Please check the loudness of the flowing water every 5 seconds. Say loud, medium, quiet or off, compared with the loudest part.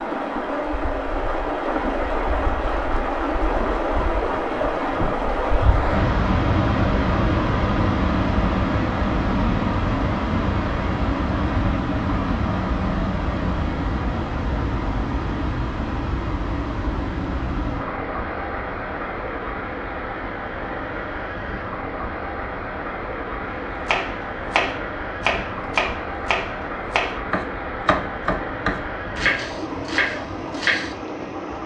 loud, loud, loud, medium, medium, medium, medium.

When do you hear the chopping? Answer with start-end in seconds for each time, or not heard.
23.9-30.9.